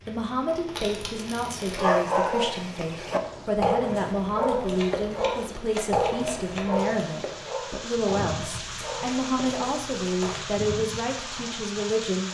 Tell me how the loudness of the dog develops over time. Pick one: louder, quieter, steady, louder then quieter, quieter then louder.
quieter.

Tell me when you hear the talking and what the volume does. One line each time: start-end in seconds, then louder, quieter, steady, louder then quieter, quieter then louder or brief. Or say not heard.
0.1-12.2 steady.